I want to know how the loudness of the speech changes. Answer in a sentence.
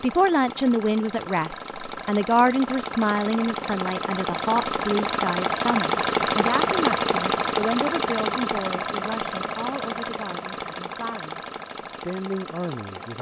The loudness of the speech goes down.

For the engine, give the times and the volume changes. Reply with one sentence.
The engine can be heard from 0.0 to 13.1 s, getting louder then quieter.